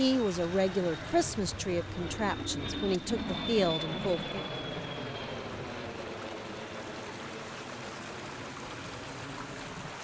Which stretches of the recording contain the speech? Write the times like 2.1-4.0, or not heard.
0.0-4.5.